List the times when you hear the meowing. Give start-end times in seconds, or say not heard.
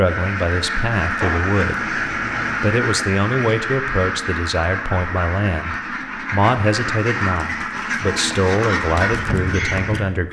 1.2-2.6.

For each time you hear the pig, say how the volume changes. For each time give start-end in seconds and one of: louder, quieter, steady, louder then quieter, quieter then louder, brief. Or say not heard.
not heard.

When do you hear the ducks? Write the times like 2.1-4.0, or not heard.
0.0-10.2.